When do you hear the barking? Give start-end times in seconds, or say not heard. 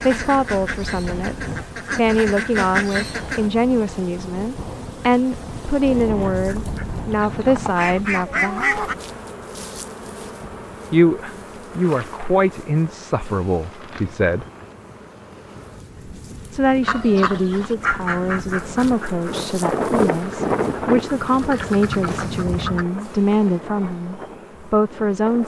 not heard.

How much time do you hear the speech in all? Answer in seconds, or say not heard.
21 s.